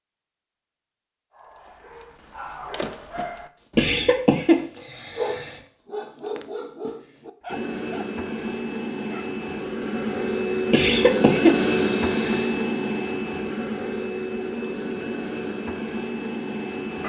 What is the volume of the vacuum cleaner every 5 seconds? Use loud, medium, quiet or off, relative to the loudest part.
off, medium, loud, medium.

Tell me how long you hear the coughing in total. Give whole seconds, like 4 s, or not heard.
4 s.